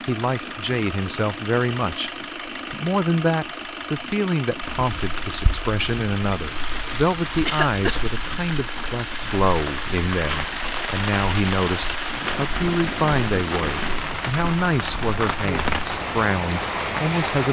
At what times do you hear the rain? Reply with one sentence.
You can hear the rain from 4.6 to 17.4 s.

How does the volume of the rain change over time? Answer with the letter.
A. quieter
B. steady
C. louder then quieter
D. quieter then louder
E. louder
E.